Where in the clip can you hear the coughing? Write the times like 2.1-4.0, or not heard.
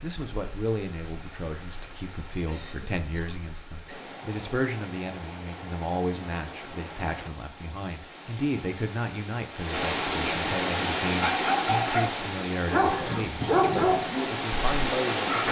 2.5-4.1, 12.8-13.7.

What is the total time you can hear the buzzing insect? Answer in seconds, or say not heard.
not heard.